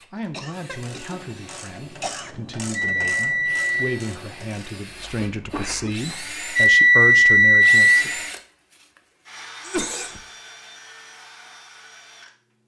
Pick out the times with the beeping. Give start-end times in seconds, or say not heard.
2.7-4.0, 6.5-7.8.